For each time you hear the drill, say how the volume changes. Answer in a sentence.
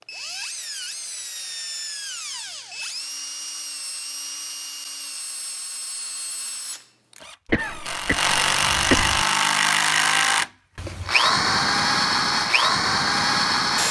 You can hear the drill from 0.0 to 13.8 s, getting louder.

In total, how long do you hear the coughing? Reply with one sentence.
You can hear the coughing for 2 seconds altogether.